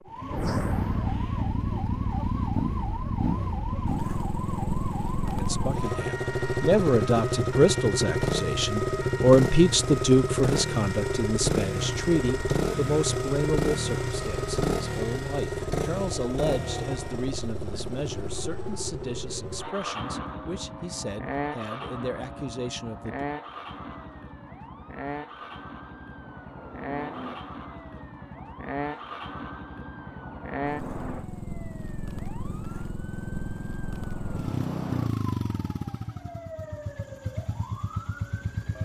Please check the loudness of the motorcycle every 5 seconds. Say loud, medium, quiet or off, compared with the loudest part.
loud, loud, loud, medium, medium, medium, medium, medium.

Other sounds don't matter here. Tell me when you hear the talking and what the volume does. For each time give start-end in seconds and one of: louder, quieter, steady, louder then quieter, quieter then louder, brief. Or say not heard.
5.3-23.2 quieter.